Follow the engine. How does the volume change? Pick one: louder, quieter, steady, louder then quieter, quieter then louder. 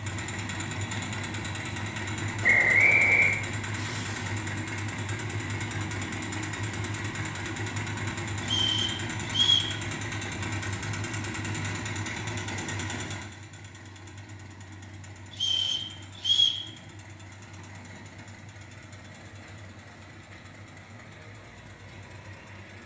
quieter.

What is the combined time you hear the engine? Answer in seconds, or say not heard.
23 s.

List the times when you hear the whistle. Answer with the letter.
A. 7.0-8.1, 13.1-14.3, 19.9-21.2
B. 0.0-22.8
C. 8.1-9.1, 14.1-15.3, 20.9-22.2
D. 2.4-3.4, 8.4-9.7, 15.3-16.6
D.